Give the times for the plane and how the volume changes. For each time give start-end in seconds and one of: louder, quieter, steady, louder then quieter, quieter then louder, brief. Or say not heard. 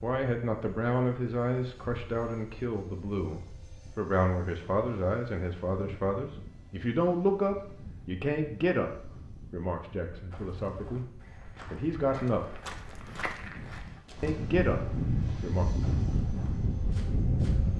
0.0-17.7 louder.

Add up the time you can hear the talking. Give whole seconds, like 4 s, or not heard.
14 s.